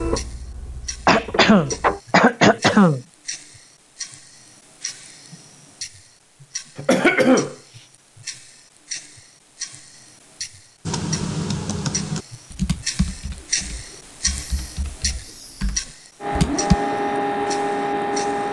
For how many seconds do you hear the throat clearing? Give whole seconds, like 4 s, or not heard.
5 s.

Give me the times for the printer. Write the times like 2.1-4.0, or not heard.
0.0-2.0, 16.2-18.4.